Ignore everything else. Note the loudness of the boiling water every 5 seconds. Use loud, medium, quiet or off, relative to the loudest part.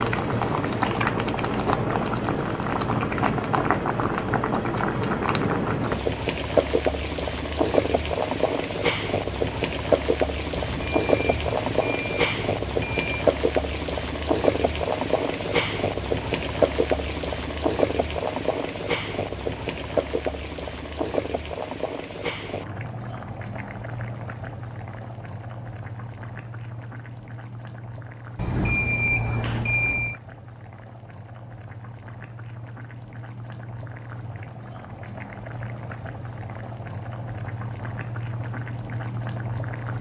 loud, loud, loud, loud, medium, quiet, quiet, medium.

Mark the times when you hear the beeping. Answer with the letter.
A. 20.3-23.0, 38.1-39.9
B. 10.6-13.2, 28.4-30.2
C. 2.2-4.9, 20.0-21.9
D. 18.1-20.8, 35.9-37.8
B.